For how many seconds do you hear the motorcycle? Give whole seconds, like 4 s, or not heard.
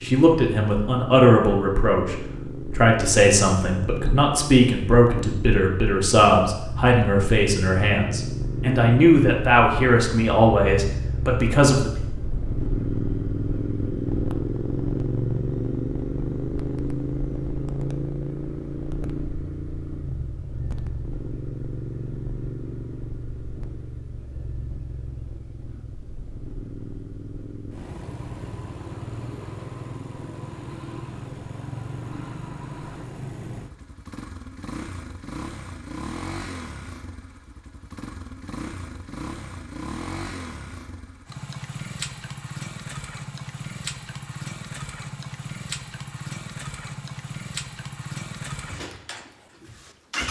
50 s.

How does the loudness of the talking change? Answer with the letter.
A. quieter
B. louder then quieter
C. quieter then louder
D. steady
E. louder
D.